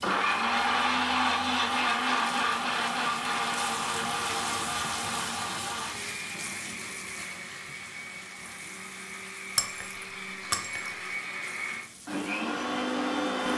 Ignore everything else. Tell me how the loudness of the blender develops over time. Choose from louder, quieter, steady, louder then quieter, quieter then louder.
quieter then louder.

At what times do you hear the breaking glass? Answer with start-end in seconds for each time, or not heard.
9.6-10.9.